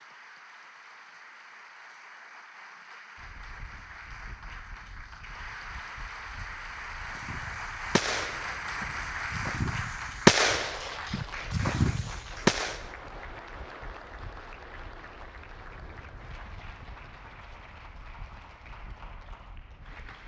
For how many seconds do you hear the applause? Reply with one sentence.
You can hear the applause for 20 seconds altogether.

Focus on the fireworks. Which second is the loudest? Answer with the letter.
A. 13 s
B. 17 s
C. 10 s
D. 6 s
C.